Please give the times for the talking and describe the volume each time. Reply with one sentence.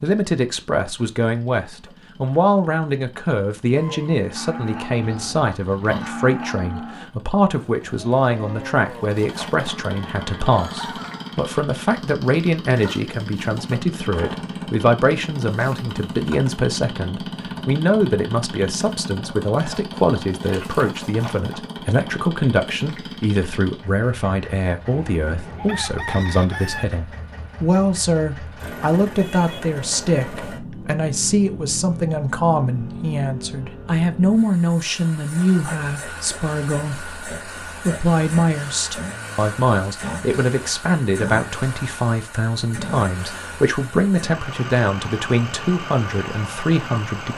You can hear the talking from 0.0 to 47.3 s, at a steady volume.